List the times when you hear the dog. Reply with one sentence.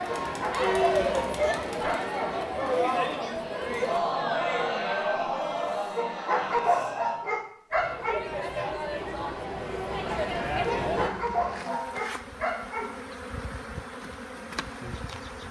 The dog can be heard from 0.2 to 2.4 s, from 6.0 to 8.2 s and from 10.8 to 12.9 s.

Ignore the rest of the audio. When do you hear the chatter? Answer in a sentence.
The chatter can be heard from 0.0 to 11.1 s.